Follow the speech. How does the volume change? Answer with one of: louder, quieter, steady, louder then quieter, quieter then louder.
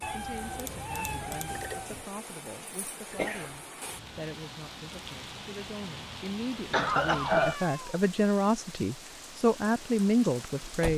louder.